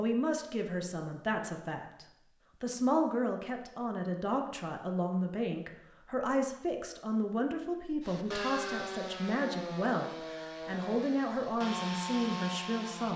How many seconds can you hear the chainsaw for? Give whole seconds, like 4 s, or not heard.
5 s.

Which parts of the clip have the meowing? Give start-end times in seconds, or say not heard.
8.3-8.8.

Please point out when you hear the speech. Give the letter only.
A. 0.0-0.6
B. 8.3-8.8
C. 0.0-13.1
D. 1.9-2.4
C.